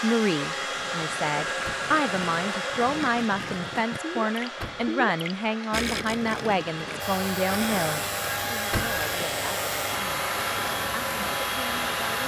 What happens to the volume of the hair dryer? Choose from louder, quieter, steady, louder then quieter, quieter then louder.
quieter then louder.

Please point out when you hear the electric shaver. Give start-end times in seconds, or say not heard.
7.0-12.2.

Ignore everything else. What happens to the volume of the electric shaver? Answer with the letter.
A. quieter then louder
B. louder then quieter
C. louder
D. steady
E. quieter
D.